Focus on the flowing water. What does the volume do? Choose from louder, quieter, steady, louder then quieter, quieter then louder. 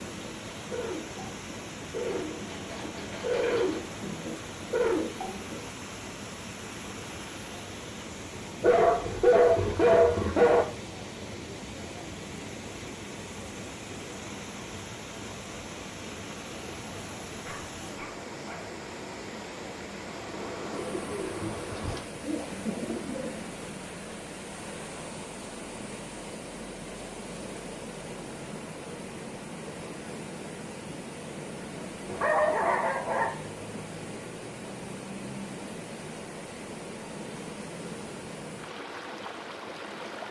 steady.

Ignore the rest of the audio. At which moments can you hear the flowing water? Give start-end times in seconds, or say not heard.
0.0-40.2.